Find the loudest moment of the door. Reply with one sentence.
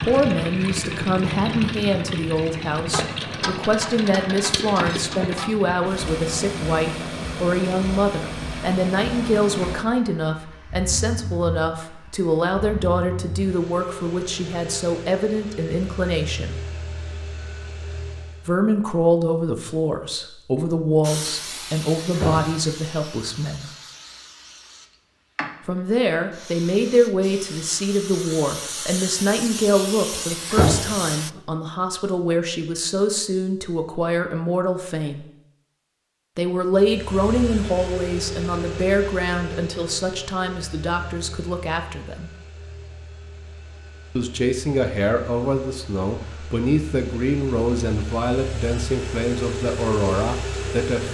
The volume of the door peaks at 31 seconds.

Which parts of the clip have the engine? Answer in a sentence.
The engine can be heard from 0.0 to 18.6 s and from 36.7 to 51.0 s.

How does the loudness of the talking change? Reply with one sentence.
The loudness of the talking stays about the same.